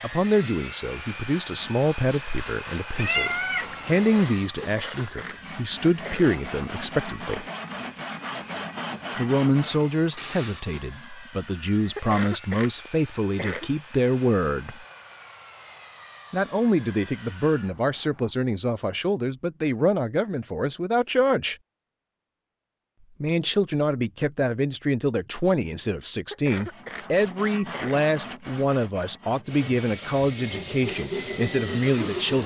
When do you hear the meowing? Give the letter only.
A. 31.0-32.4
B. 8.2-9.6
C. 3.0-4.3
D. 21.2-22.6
C.